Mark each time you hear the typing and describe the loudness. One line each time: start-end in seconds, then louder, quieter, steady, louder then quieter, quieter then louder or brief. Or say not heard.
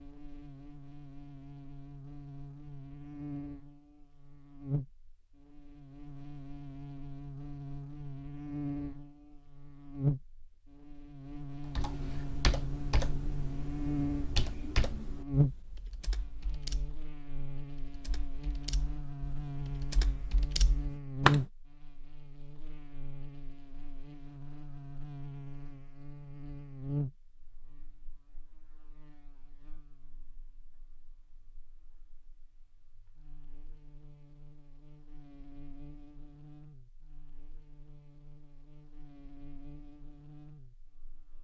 11.7-21.4 quieter then louder.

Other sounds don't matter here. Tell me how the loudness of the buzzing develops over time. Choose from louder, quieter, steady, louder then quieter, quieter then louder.
louder then quieter.